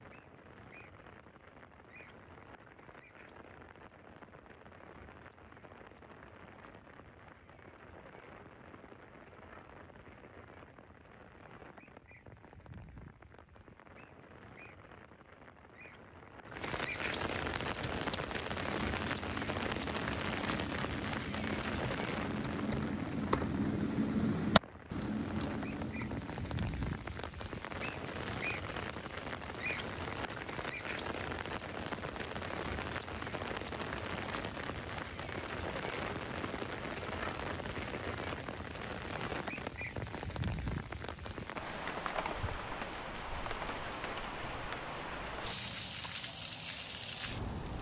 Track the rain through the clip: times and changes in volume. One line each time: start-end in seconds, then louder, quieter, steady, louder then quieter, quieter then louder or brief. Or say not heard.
0.0-47.7 louder.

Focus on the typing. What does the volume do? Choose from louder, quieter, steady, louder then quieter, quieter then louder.
louder then quieter.